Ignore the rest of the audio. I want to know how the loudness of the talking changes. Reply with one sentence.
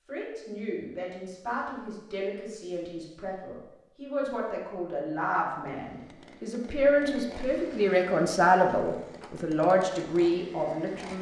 The volume of the talking goes up.